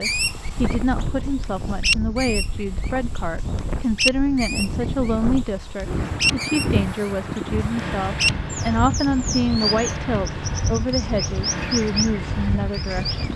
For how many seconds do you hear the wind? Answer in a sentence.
The wind can be heard for 13 seconds in total.